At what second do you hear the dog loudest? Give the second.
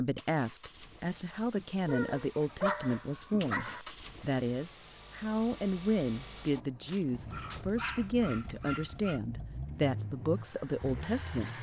3 s.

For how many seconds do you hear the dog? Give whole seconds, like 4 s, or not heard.
4 s.